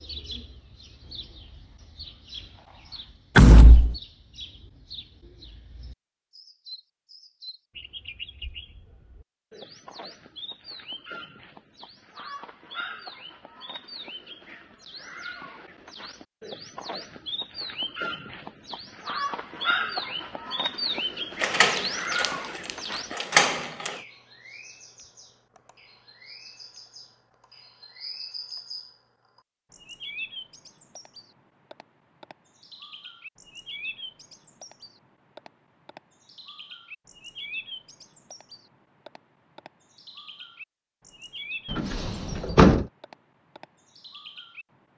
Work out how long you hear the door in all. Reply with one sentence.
You can hear the door for 4 seconds altogether.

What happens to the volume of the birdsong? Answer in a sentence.
The loudness of the birdsong goes up, then down.